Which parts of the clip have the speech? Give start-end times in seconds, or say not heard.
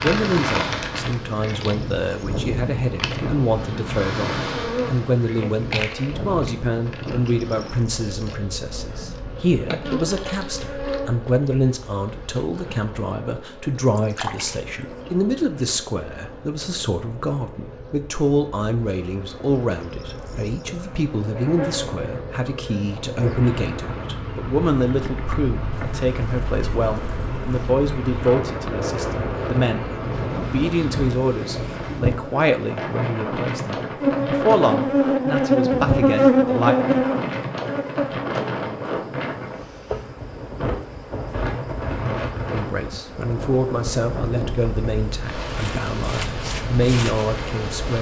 0.0-36.8, 42.5-47.9.